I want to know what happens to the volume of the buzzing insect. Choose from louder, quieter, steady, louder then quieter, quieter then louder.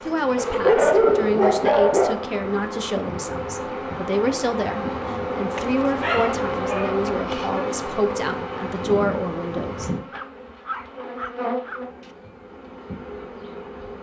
louder then quieter.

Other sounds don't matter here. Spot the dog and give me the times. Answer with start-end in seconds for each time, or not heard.
0.3-2.2, 5.5-7.5, 10.1-12.1.